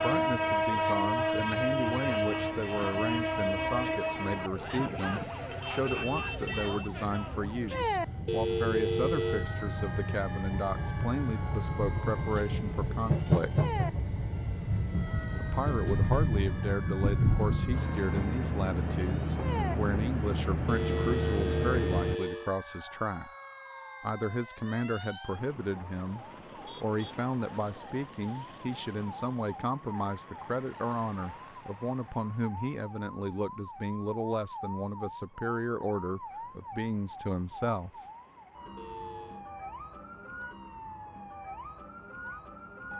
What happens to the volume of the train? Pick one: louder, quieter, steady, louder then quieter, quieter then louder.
quieter then louder.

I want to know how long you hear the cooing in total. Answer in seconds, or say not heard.
not heard.